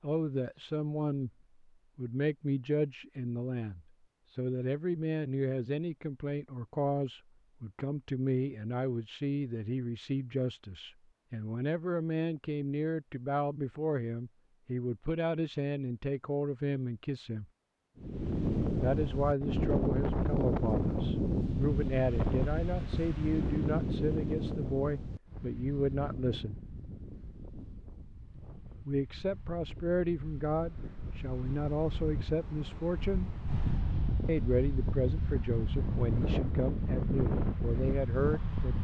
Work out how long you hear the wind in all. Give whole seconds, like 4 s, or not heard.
21 s.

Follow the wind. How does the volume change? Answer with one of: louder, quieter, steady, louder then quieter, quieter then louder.
quieter then louder.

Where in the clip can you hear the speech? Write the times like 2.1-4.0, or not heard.
0.0-1.3, 1.9-17.4, 18.8-26.6, 28.9-33.4, 34.2-38.7.